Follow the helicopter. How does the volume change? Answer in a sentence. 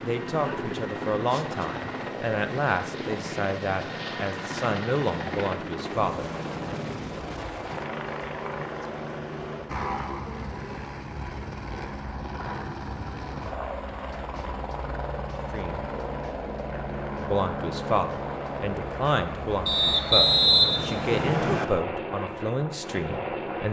The volume of the helicopter stays about the same.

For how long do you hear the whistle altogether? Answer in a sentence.
The whistle can be heard for 2 seconds in total.